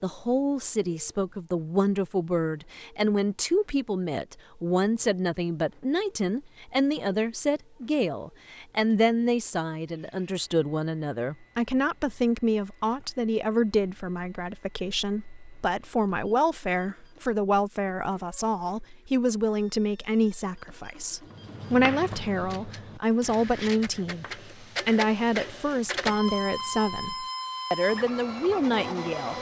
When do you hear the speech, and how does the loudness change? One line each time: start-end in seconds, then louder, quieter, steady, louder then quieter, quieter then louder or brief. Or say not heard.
0.0-29.3 steady.